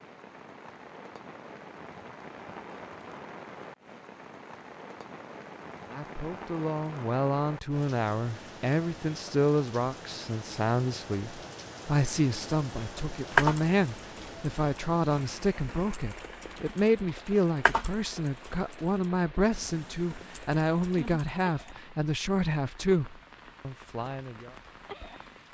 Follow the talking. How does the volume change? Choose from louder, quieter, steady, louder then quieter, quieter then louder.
steady.